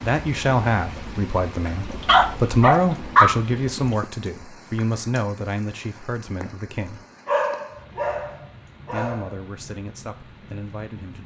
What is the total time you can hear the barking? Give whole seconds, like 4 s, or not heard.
4 s.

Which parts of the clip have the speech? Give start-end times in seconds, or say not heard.
0.0-7.0, 8.9-11.2.